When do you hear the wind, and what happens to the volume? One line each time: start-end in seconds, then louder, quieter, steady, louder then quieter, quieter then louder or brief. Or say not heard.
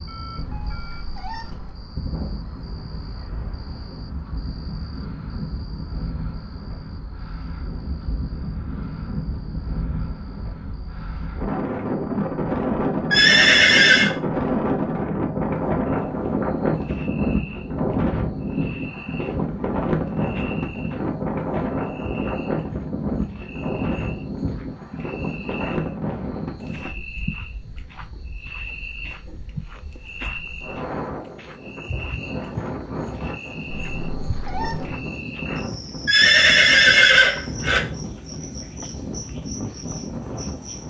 0.0-40.8 louder then quieter.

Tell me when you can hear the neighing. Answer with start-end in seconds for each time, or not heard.
13.1-14.1, 36.0-37.8.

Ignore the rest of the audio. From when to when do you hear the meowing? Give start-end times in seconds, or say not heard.
0.3-1.8, 33.7-35.0.